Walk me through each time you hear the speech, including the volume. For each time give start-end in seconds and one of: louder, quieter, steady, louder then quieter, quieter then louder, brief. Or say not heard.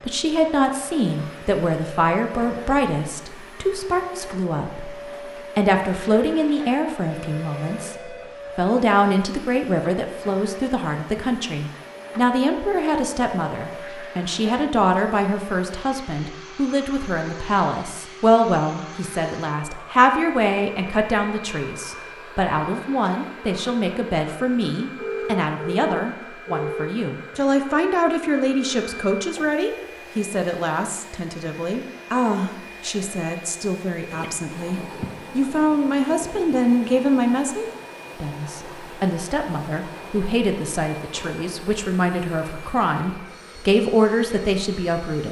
0.0-45.2 steady.